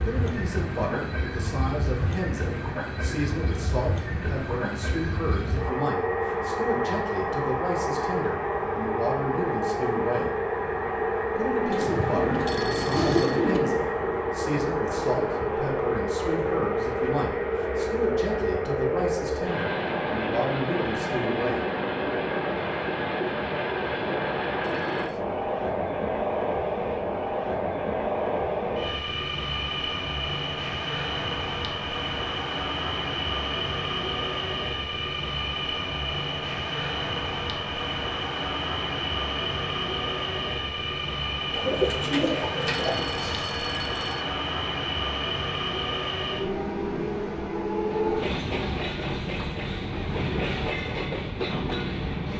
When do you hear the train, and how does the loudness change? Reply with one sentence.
The train can be heard from 0.0 to 52.3 s, at a steady volume.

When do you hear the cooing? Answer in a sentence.
You can hear the cooing from 11.7 to 13.6 s and from 41.5 to 43.0 s.